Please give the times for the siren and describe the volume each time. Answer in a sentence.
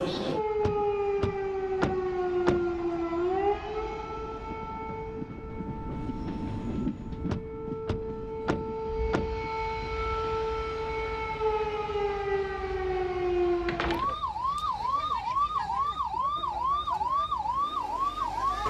The siren can be heard from 0.0 to 18.6 s, getting quieter then louder.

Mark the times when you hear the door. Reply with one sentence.
The door can be heard from 0.6 to 2.8 s, from 7.2 to 9.9 s and from 13.7 to 15.0 s.